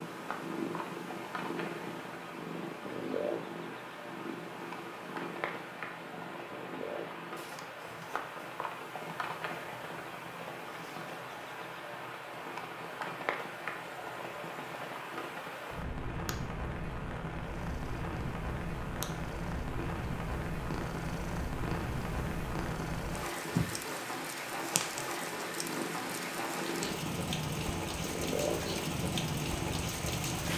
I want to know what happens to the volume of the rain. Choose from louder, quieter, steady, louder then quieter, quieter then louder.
louder.